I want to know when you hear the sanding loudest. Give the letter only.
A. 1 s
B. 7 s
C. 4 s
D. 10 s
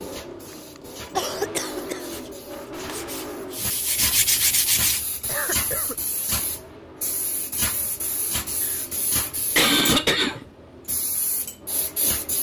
C.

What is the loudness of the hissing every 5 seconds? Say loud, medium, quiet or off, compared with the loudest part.
medium, loud, loud.